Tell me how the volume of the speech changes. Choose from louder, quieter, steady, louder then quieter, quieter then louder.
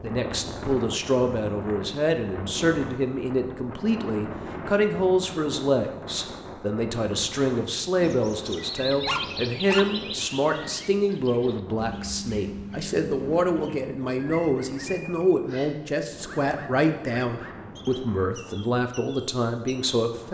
steady.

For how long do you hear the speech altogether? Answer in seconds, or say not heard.
20 s.